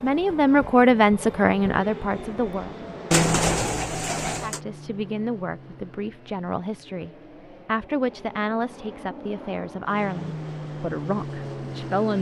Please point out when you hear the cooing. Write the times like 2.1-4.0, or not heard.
3.1-4.6.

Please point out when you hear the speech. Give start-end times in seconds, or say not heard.
0.0-2.8, 4.4-12.1.